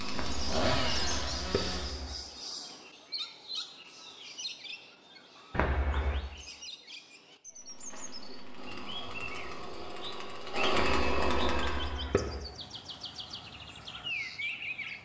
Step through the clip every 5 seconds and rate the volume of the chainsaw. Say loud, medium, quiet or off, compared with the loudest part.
loud, quiet, loud.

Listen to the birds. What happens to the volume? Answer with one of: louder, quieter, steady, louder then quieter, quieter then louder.
quieter then louder.